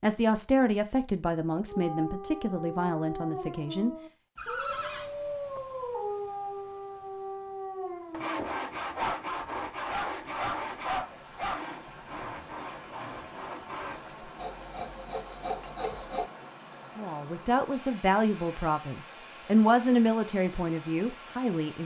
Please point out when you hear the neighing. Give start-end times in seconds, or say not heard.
4.3-5.1.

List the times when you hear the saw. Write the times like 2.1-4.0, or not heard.
8.1-16.3.